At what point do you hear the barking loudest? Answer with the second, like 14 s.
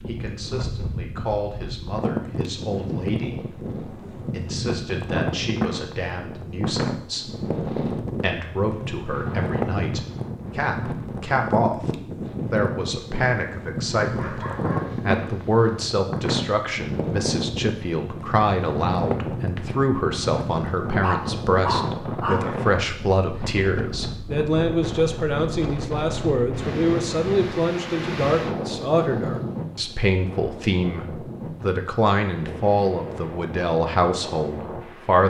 22 s.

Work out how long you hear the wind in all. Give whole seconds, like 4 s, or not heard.
35 s.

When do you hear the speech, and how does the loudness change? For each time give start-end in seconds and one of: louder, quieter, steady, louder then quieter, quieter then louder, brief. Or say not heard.
0.1-35.2 louder.